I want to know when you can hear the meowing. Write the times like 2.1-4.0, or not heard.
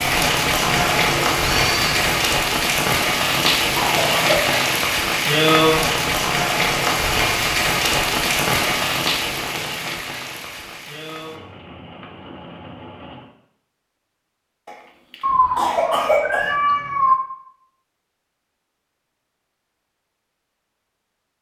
0.6-2.2, 15.2-17.1.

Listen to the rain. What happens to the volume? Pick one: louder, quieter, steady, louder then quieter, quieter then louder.
quieter.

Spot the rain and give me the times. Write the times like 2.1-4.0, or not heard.
0.0-13.2.